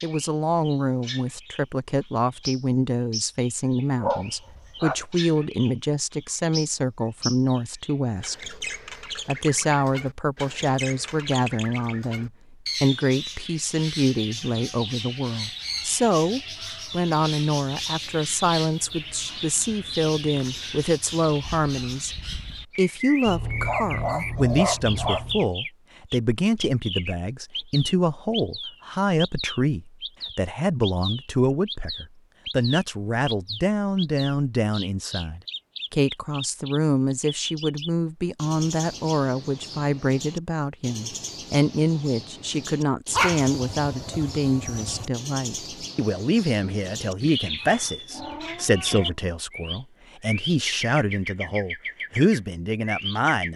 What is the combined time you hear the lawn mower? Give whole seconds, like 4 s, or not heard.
not heard.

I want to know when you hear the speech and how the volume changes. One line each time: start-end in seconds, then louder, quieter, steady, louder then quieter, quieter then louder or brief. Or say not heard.
0.0-8.6 steady
9.2-53.5 steady.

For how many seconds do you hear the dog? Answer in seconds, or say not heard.
5 s.